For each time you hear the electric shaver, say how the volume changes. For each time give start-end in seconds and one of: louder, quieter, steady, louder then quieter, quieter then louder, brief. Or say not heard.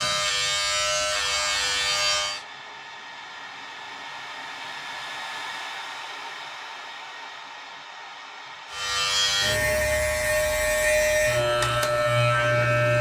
0.0-2.5 brief
8.7-12.9 steady.